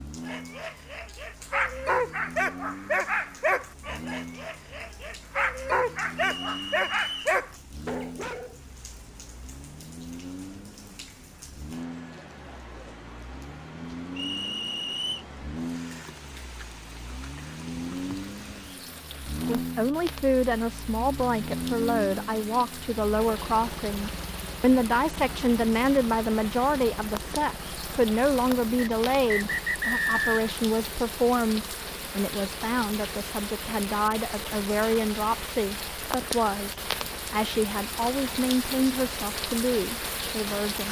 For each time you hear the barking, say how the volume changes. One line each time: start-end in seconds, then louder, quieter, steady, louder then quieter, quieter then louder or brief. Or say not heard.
0.2-8.6 quieter then louder.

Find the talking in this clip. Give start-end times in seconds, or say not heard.
19.6-40.8.